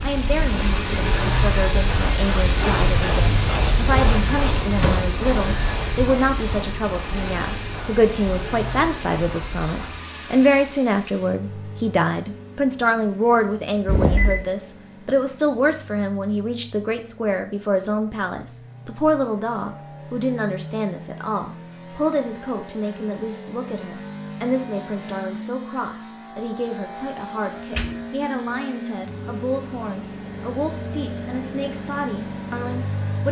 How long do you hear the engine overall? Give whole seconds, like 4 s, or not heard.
33 s.